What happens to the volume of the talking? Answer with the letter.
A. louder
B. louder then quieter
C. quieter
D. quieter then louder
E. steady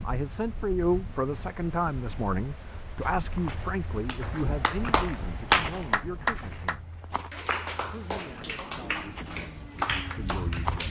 C.